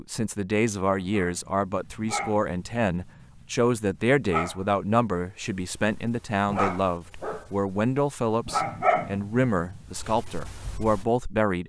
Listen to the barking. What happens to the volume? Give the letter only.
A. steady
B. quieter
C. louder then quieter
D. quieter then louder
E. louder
E.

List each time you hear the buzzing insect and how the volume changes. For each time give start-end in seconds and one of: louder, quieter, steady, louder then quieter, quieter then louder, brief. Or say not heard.
not heard.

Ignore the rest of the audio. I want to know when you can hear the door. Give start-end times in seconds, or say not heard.
not heard.